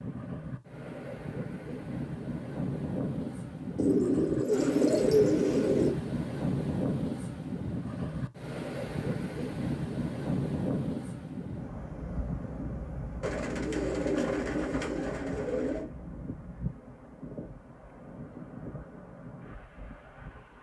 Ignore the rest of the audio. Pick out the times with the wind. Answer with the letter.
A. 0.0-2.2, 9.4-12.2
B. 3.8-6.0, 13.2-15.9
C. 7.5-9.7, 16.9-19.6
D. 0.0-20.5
D.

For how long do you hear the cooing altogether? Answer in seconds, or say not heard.
5 s.